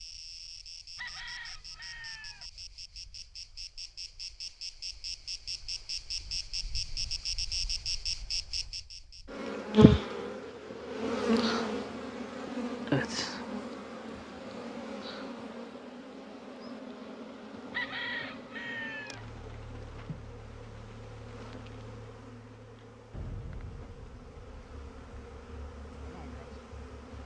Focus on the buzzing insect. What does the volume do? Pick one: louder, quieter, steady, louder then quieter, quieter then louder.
louder then quieter.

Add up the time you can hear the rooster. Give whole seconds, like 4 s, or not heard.
3 s.